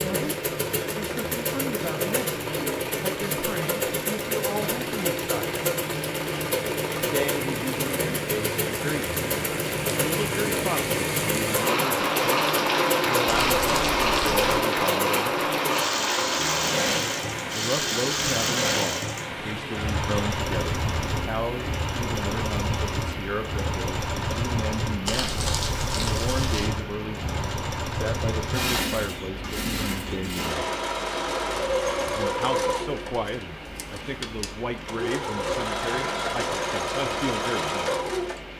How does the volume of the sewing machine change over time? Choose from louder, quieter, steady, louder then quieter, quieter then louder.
steady.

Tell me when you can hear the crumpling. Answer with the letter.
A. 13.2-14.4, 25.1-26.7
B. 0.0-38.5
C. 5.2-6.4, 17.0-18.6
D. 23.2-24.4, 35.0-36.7
A.